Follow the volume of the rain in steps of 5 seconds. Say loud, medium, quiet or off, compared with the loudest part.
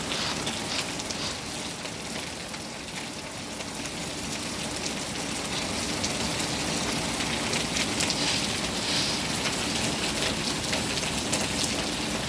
medium, loud, loud.